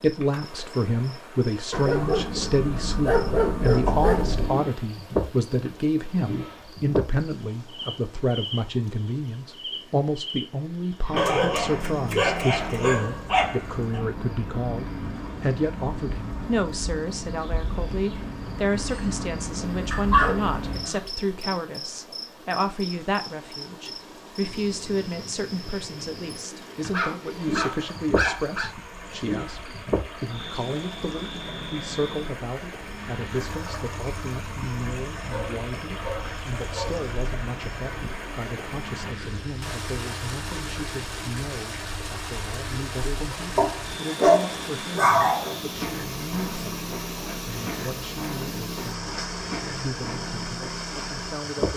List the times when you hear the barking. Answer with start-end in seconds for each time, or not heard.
1.7-4.5, 11.2-14.0, 19.9-21.0, 26.9-28.7, 35.3-37.0, 43.5-45.5.